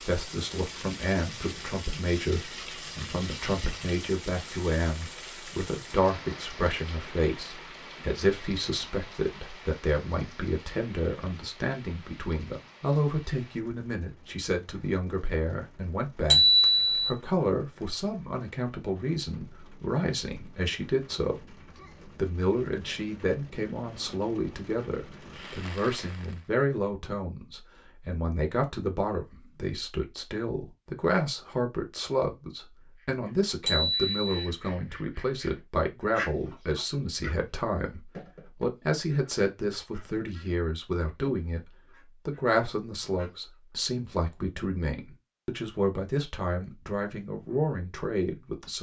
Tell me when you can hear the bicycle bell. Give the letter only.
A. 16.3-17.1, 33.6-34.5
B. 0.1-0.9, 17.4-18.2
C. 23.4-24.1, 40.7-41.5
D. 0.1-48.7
A.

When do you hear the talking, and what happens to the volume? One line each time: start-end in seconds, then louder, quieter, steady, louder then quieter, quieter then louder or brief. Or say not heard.
0.1-48.7 steady.